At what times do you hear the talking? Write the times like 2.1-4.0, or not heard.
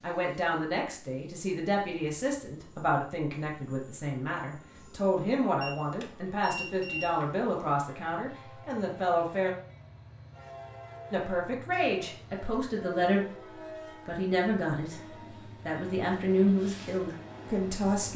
0.0-9.6, 11.1-13.2, 14.1-18.1.